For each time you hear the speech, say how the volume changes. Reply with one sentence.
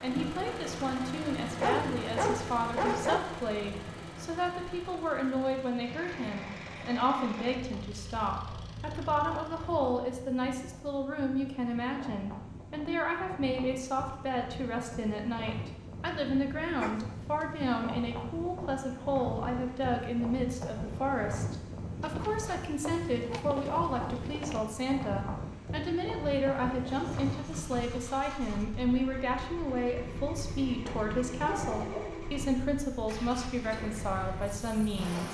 You can hear the speech from 0.0 to 35.2 s, at a steady volume.